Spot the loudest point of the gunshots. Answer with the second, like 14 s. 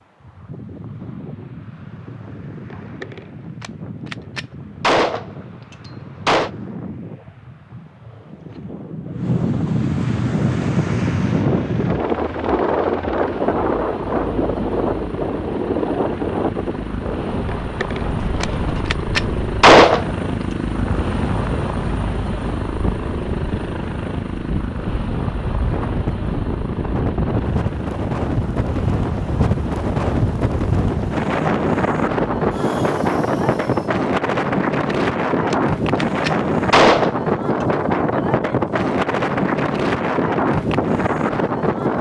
20 s.